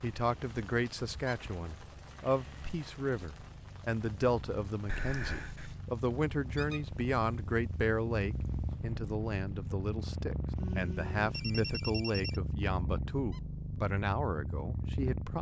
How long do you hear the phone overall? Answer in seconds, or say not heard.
3 s.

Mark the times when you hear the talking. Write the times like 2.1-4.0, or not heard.
0.0-15.3.